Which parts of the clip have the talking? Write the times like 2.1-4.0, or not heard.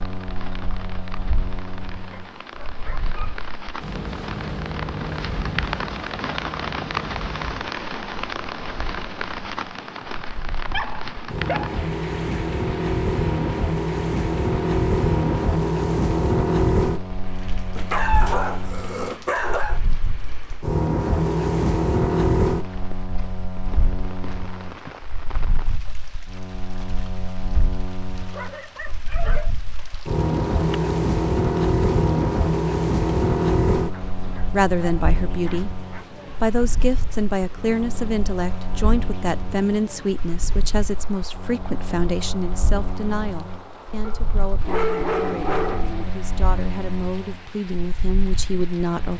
34.5-35.7, 36.4-49.1.